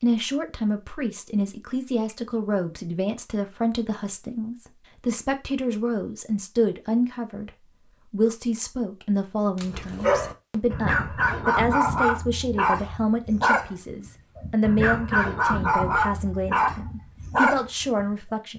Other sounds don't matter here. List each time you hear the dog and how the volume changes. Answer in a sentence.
You can hear the dog from 9.6 to 18.1 s, at a steady volume.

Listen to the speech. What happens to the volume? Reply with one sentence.
The loudness of the speech stays about the same.